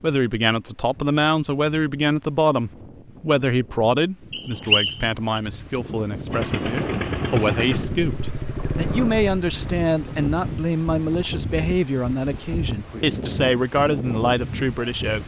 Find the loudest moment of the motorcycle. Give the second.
7 s.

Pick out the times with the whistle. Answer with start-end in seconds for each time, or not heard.
4.3-5.4.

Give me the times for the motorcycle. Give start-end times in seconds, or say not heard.
6.3-10.6.